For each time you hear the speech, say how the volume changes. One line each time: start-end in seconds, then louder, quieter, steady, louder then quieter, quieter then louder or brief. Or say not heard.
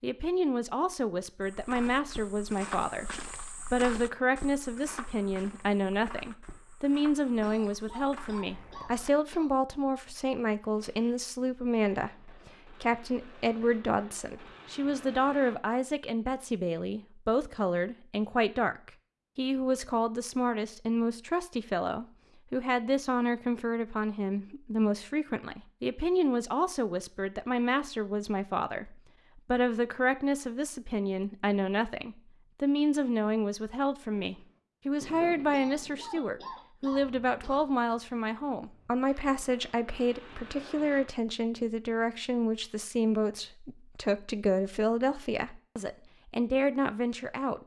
0.0-47.6 steady.